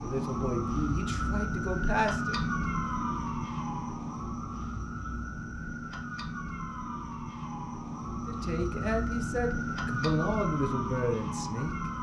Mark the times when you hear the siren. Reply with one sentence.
You can hear the siren from 0.0 to 11.9 s.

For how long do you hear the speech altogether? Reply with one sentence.
You can hear the speech for 6 seconds altogether.